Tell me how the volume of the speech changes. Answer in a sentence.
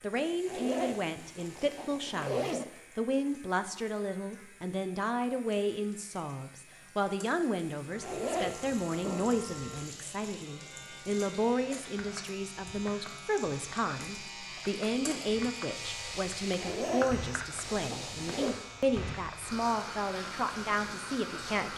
The loudness of the speech stays about the same.